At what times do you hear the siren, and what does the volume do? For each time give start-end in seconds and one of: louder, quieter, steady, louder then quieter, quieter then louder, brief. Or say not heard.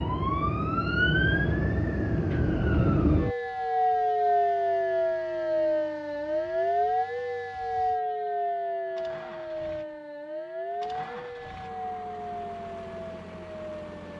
0.0-14.1 quieter.